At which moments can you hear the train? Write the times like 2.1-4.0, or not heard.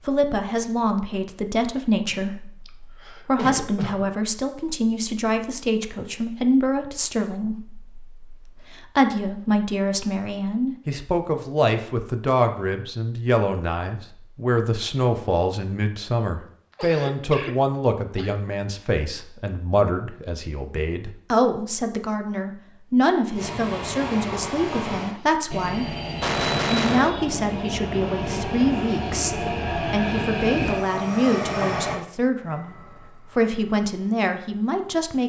23.3-35.2.